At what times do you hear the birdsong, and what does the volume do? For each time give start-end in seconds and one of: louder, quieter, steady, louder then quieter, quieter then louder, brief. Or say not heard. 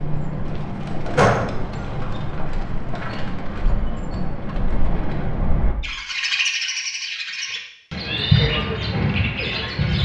0.0-10.0 louder.